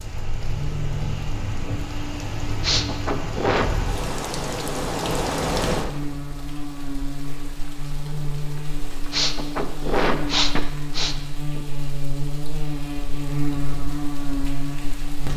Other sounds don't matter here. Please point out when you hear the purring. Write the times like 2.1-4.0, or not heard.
not heard.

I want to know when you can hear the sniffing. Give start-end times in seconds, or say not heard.
2.6-3.7, 9.1-11.7.